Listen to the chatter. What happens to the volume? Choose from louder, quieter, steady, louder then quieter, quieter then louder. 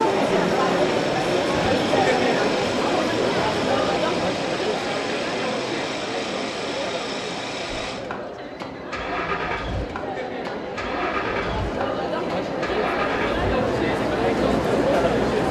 quieter then louder.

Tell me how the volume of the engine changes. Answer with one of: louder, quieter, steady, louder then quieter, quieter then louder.
steady.